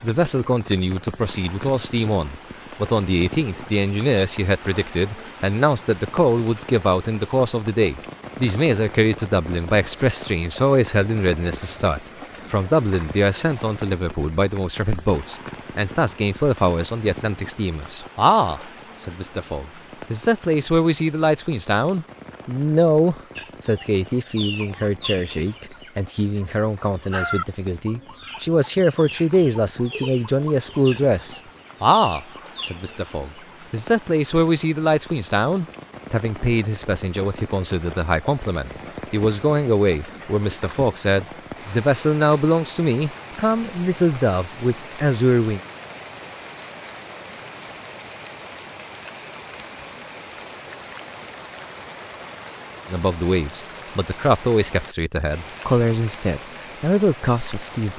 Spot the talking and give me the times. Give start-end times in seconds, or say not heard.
0.0-45.6, 52.9-57.9.